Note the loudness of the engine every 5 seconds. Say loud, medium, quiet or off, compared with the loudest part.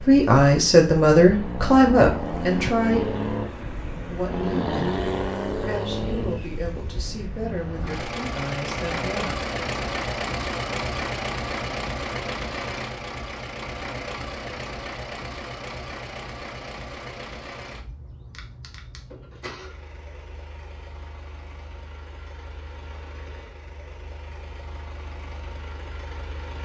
loud, loud, loud, medium, quiet, quiet.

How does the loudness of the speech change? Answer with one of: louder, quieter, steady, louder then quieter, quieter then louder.
quieter.